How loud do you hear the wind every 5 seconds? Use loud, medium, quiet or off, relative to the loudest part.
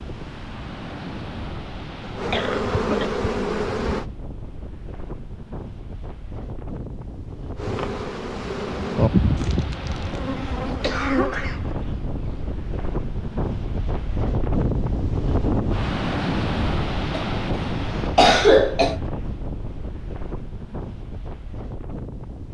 medium, medium, loud, loud, medium.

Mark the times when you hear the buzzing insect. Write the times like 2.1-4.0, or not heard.
2.1-4.0, 7.5-12.5.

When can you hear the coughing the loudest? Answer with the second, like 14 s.
18 s.